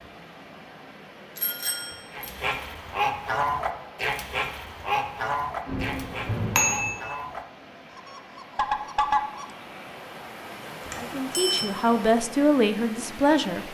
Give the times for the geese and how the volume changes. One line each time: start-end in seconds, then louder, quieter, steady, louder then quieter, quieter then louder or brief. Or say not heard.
2.1-9.4 quieter then louder.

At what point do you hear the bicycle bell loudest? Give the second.
7 s.